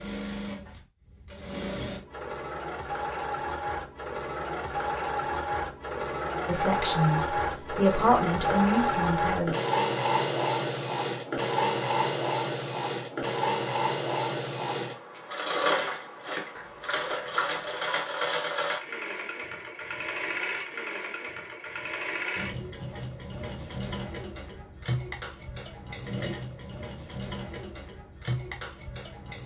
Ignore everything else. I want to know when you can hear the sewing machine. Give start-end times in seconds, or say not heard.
0.0-29.4.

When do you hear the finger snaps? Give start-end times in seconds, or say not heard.
16.6-17.8.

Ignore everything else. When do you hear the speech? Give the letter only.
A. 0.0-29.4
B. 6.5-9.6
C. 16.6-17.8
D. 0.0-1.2
B.